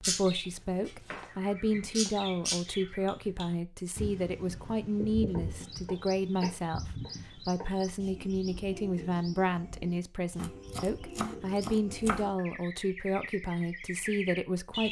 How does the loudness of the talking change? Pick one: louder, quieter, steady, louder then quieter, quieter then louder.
steady.